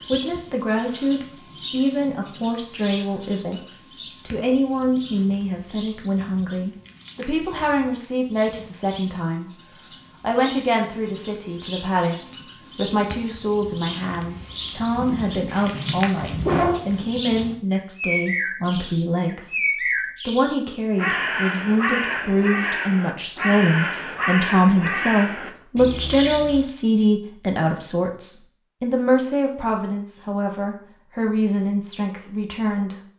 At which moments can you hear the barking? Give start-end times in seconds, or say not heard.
15.1-16.9.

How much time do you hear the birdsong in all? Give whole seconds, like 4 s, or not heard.
27 s.